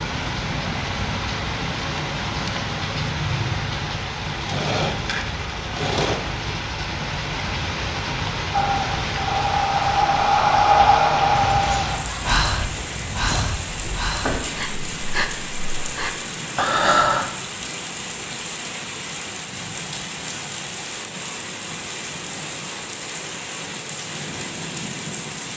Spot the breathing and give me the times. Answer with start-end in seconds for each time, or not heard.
8.5-17.3.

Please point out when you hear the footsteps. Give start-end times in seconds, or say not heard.
11.3-14.7.